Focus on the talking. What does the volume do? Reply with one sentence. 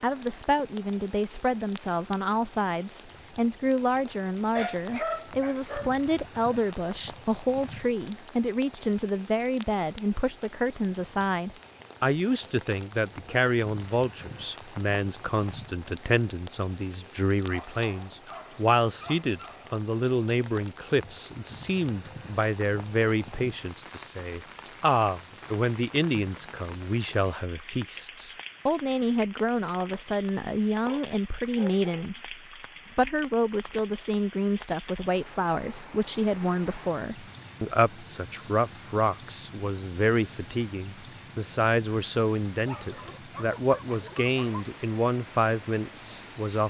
The volume of the talking stays about the same.